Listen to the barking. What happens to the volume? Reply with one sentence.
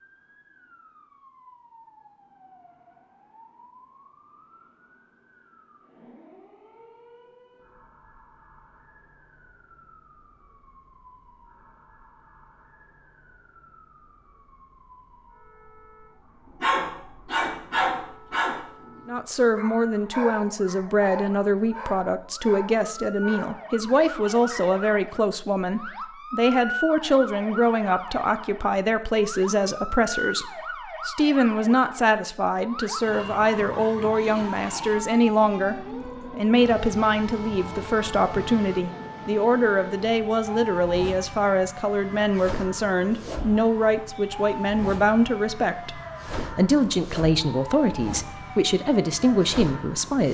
The volume of the barking goes down.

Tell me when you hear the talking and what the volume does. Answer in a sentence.
You can hear the talking from 19.1 to 50.3 s, at a steady volume.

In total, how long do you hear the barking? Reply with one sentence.
You can hear the barking for 8 seconds altogether.